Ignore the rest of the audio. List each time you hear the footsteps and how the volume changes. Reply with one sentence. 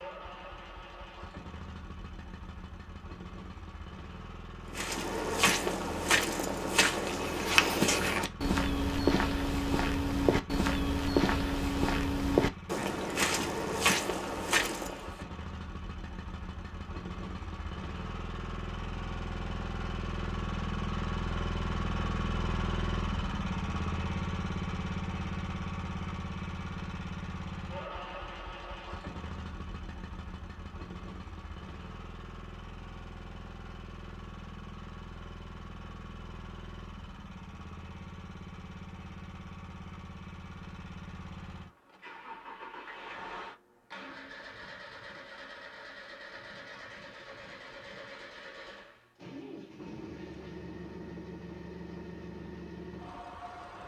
The footsteps can be heard from 4.7 to 15.2 s, at a steady volume.